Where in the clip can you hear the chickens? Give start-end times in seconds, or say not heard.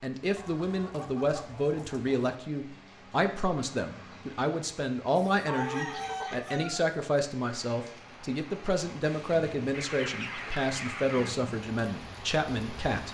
0.3-2.4, 5.2-6.8, 9.1-11.4.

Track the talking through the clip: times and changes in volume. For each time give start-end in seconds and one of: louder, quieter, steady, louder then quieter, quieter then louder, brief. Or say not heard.
0.0-13.1 steady.